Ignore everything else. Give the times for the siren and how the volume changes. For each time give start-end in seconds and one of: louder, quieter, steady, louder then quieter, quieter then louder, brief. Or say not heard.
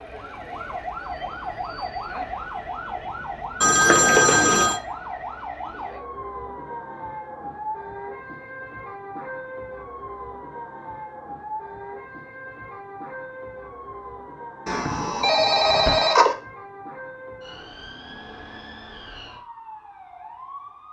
0.0-20.8 quieter.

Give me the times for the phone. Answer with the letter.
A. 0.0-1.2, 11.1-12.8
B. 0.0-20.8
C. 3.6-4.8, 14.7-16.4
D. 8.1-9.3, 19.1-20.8
C.